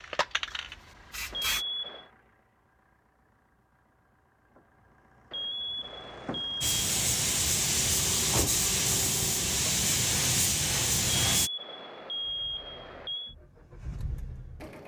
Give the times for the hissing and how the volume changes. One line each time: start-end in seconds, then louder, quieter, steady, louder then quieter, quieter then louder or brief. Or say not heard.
0.0-1.6 brief
6.6-11.5 steady.